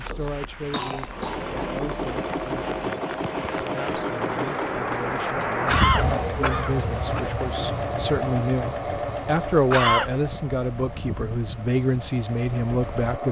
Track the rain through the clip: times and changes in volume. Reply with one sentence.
The rain can be heard from 0.0 to 13.2 s, getting louder then quieter.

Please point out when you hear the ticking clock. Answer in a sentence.
You can't hear the ticking clock here.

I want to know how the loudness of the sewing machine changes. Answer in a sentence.
The volume of the sewing machine goes down.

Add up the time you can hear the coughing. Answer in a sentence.
The coughing can be heard for 3 seconds in total.